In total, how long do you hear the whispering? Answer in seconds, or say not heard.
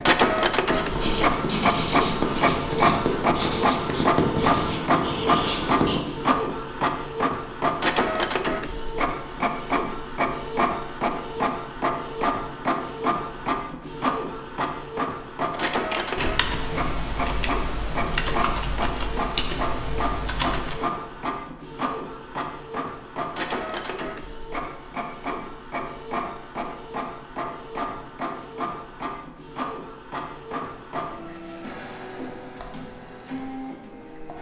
not heard.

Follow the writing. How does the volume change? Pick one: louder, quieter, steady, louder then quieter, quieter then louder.
steady.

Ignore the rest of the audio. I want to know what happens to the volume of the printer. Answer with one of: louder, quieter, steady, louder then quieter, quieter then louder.
quieter.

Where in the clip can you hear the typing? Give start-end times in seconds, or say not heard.
15.5-20.9.